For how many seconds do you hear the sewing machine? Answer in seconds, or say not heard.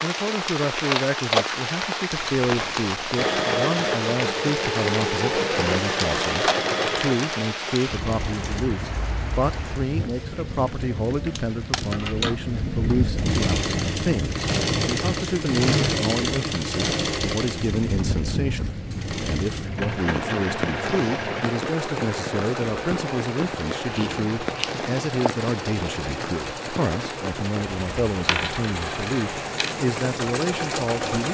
24 s.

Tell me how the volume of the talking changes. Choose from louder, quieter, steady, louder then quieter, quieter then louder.
steady.